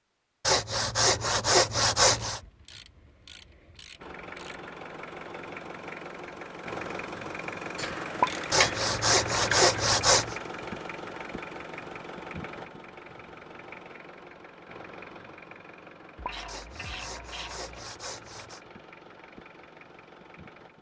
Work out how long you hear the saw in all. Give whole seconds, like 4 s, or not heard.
6 s.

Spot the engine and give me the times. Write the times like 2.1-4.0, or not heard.
4.0-20.7.